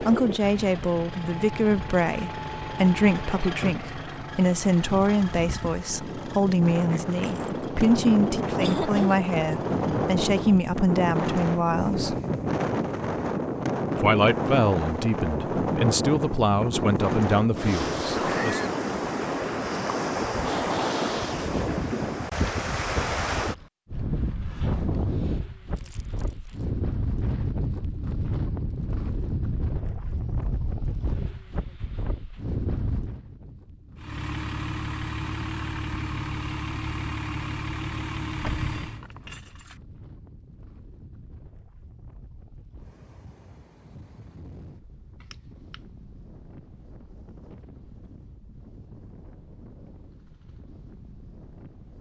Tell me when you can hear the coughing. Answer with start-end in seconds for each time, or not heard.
8.6-9.2, 18.1-18.8, 45.2-45.8.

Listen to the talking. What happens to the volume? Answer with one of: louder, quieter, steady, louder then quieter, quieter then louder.
steady.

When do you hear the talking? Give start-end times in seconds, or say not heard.
0.0-12.2, 13.9-18.6.